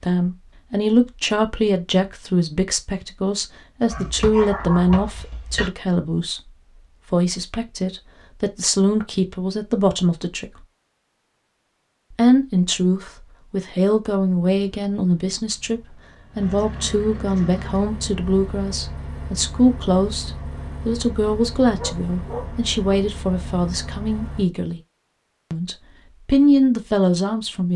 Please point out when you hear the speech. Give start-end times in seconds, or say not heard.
0.0-6.5, 7.1-10.7, 12.1-24.8, 25.5-27.7.